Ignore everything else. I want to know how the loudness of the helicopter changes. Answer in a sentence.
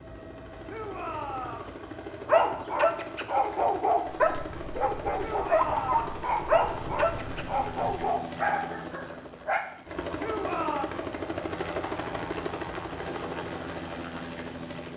The volume of the helicopter goes up.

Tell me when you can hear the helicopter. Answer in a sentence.
You can hear the helicopter from 0.0 to 14.9 s.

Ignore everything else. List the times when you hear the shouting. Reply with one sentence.
The shouting can be heard from 0.7 to 1.8 s, from 5.2 to 6.2 s and from 10.2 to 10.9 s.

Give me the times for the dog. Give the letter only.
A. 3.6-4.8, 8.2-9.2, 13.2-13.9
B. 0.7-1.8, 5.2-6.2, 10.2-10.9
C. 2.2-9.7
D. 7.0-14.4
C.